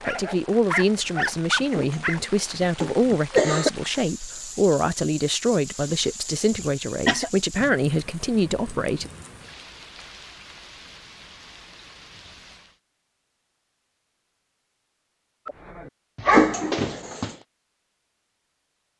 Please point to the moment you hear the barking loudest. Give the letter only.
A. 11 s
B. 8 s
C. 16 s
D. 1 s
C.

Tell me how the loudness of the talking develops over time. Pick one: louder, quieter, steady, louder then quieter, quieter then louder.
steady.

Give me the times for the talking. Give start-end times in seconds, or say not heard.
0.1-9.1.